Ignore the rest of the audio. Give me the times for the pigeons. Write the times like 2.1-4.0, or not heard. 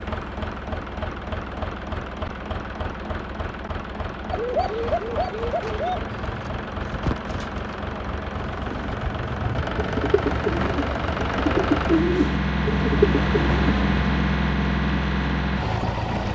4.3-13.9.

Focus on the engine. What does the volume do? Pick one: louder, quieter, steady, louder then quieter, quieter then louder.
louder.